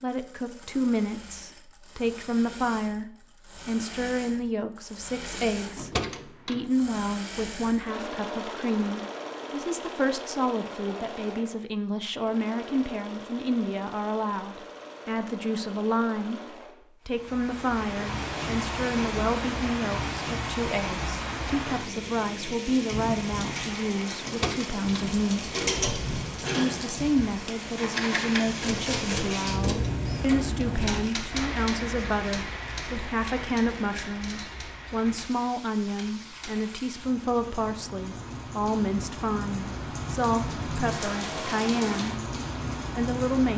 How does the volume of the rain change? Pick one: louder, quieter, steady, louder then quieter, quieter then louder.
quieter then louder.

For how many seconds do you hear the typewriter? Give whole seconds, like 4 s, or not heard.
9 s.